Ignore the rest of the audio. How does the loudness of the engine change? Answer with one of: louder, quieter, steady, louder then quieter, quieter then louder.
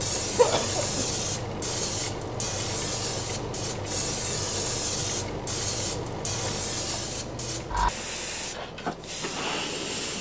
quieter.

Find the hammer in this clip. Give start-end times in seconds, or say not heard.
not heard.